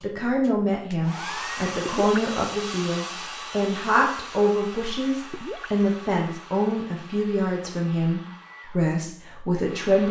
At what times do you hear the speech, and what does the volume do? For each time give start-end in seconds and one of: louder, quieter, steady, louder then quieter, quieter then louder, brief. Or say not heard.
0.0-10.0 steady.